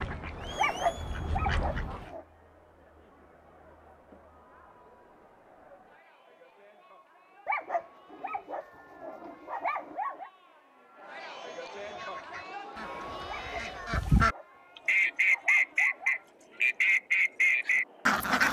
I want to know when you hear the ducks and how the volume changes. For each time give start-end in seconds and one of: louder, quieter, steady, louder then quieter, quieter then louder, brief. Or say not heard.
0.0-2.1 brief
11.8-18.4 louder.